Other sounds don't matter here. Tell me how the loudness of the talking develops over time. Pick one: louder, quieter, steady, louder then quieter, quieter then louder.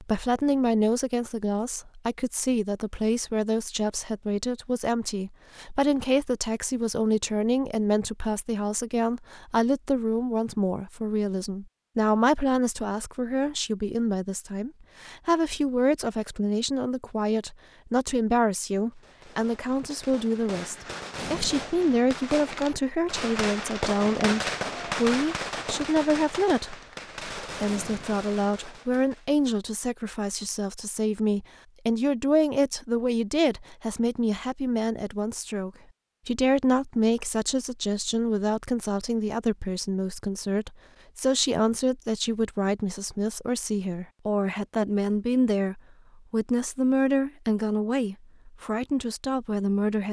steady.